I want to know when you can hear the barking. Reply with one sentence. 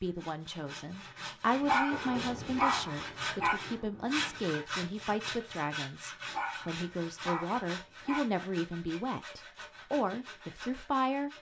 You can hear the barking from 1.6 to 3.5 s and from 6.2 to 8.2 s.